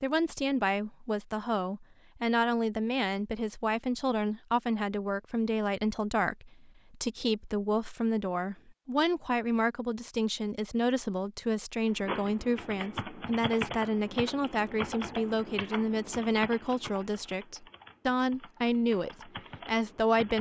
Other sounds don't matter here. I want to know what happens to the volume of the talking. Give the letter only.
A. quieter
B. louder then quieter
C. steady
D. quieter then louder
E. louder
C.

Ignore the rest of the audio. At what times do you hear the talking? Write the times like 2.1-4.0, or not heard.
0.0-20.3.